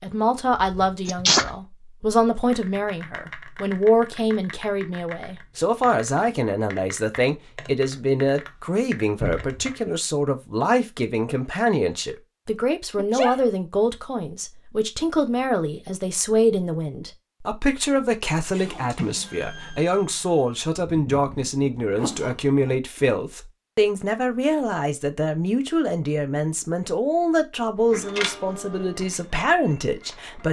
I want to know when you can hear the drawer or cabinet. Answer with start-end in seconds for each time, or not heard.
9.2-9.7.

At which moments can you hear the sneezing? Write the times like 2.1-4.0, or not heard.
1.1-1.5, 12.9-13.4, 20.8-22.5.